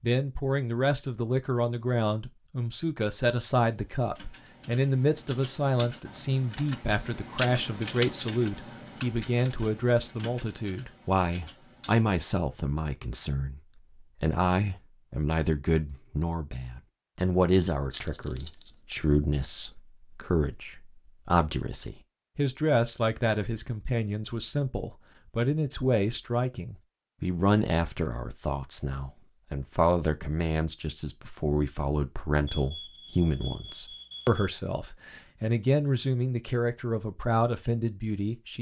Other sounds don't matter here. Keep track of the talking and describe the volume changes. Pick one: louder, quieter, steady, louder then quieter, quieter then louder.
steady.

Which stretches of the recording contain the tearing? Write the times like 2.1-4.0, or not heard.
17.9-19.0.